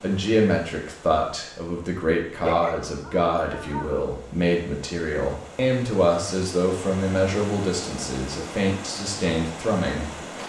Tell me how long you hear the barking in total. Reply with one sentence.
You can hear the barking for 2 seconds altogether.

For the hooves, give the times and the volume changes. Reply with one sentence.
You can't hear the hooves here.